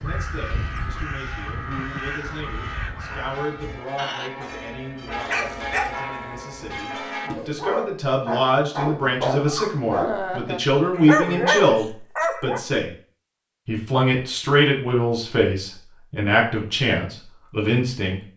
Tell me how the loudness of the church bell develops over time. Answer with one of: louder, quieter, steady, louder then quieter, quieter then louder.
louder.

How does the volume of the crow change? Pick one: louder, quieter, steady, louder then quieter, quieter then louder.
quieter.